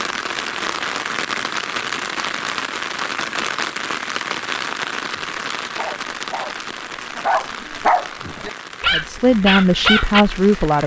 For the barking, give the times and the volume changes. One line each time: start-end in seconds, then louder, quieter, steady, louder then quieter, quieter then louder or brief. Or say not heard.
5.0-10.2 louder.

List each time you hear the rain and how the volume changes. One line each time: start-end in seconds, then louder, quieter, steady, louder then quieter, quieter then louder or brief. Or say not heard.
0.0-10.8 quieter.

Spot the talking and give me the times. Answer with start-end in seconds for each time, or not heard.
8.9-10.8.